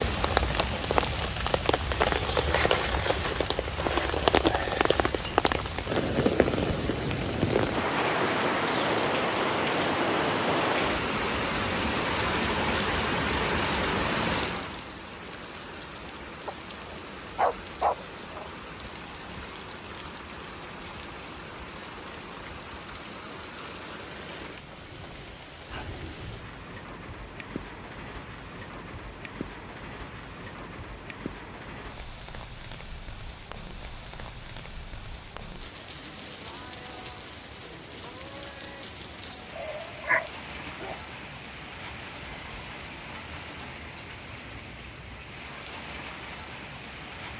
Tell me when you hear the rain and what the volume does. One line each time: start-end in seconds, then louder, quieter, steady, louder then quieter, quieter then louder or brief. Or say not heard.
0.0-47.3 quieter.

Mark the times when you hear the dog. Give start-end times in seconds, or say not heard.
16.4-18.5, 39.5-41.0.